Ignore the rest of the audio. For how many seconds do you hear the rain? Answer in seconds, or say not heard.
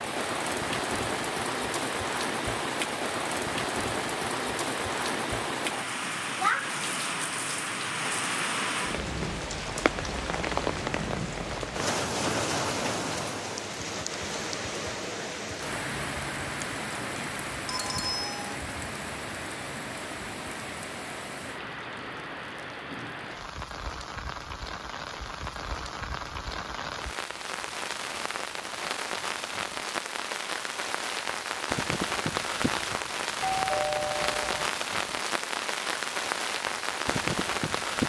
38 s.